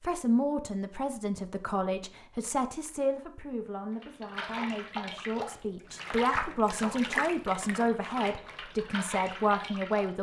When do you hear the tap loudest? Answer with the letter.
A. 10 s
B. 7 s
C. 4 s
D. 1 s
B.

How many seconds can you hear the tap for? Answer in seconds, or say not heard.
6 s.